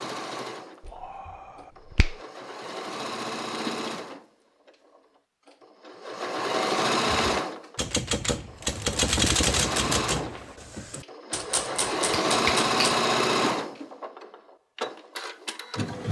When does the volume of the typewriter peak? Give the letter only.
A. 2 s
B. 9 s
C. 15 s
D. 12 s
B.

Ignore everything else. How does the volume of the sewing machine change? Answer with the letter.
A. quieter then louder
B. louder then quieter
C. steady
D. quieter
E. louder
E.